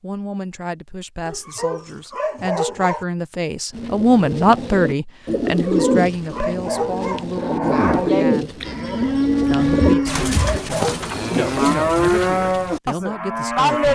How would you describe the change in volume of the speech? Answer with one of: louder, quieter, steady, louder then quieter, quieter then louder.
louder then quieter.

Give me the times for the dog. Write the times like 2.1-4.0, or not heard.
1.2-3.0, 5.5-7.2, 9.8-11.1.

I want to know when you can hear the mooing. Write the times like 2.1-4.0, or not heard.
7.3-13.9.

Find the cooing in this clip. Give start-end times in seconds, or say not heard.
3.7-11.8.